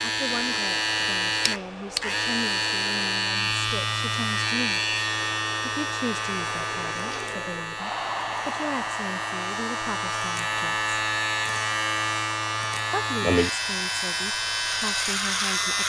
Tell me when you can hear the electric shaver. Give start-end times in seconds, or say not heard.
0.0-15.8.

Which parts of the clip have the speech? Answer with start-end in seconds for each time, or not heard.
0.0-4.8, 5.6-10.8, 12.9-15.8.